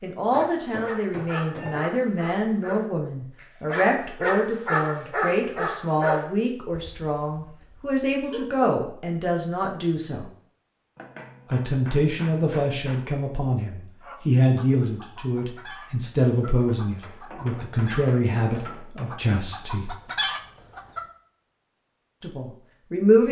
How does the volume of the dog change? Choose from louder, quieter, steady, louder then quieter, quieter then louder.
louder then quieter.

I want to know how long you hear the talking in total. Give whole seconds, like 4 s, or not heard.
20 s.